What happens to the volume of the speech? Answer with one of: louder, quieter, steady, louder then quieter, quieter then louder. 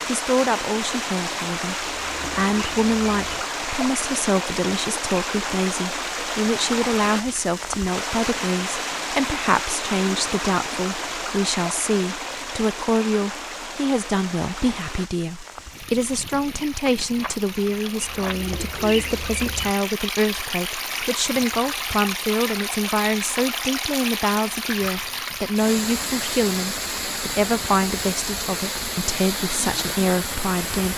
steady.